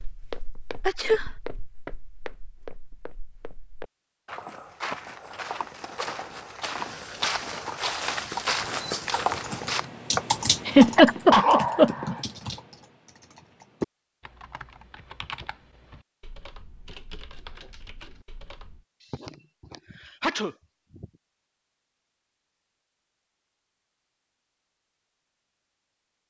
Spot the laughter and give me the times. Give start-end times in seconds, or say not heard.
10.7-12.2.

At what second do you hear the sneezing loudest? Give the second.
11 s.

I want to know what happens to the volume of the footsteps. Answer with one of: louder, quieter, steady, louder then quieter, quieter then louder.
louder.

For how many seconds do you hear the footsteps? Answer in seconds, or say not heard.
10 s.